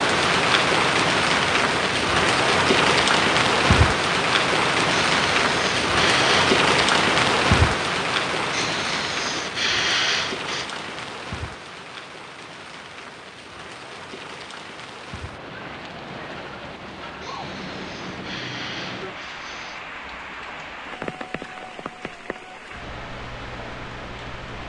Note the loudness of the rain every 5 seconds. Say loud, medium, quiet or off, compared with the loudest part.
loud, loud, quiet, quiet, quiet.